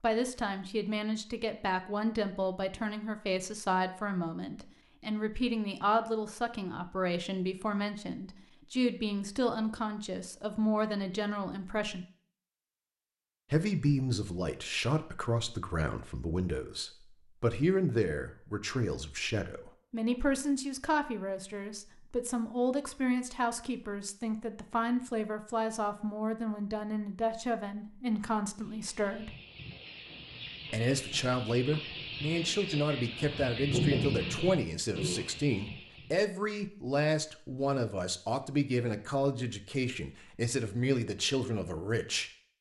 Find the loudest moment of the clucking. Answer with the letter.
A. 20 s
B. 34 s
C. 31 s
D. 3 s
B.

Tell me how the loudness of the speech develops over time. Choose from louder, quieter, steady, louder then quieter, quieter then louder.
steady.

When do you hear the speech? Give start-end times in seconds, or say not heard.
0.0-12.1, 13.5-29.4, 30.7-42.3.